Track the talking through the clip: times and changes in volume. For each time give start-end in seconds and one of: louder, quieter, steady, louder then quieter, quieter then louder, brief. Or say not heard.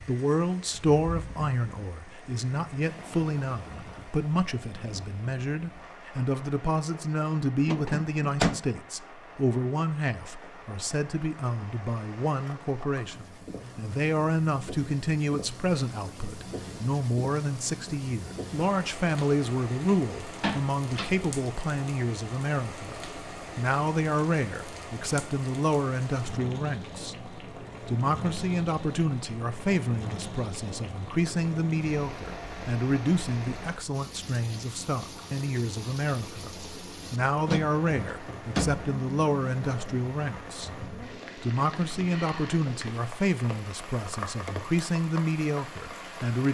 0.0-46.4 steady.